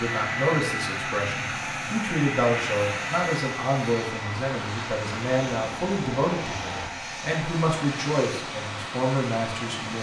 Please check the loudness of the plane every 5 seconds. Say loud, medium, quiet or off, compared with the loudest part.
loud, medium.